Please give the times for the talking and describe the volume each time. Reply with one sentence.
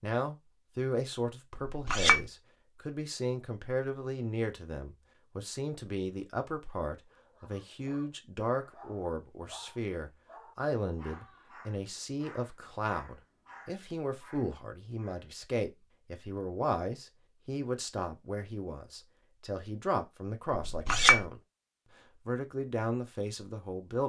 You can hear the talking from 0.0 to 21.4 s, at a steady volume; and briefly from 22.2 to 24.0 s.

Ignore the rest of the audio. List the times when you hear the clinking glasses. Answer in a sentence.
You can hear the clinking glasses from 1.6 to 2.2 s and from 20.5 to 21.2 s.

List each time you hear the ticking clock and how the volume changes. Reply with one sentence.
The ticking clock can't be heard in this clip.